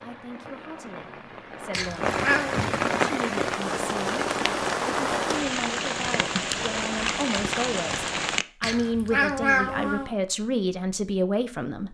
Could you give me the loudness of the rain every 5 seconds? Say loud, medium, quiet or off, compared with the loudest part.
loud, loud, off.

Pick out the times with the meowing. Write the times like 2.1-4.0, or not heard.
1.7-2.6, 8.6-10.1.